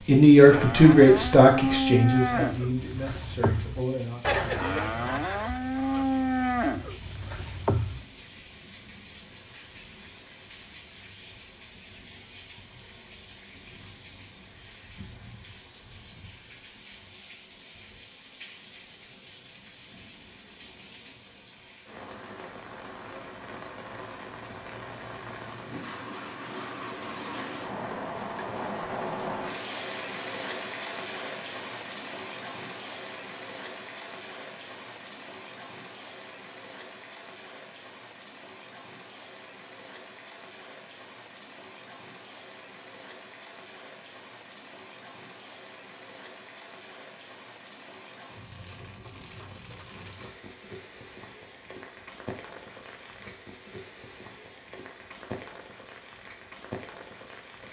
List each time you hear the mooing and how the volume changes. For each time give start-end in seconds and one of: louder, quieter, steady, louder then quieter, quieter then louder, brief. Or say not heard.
0.5-8.1 steady.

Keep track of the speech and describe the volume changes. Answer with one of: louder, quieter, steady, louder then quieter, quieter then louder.
quieter.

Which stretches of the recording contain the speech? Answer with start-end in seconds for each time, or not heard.
0.1-4.2.